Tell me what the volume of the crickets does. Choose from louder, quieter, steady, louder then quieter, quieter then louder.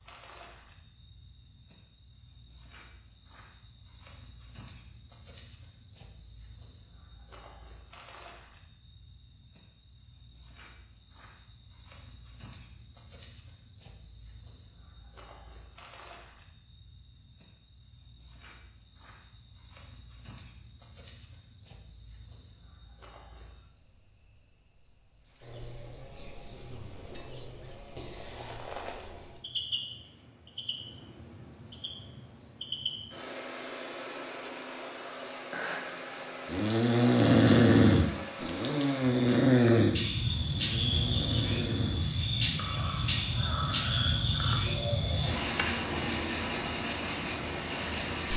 louder.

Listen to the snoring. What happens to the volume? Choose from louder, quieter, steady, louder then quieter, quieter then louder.
quieter.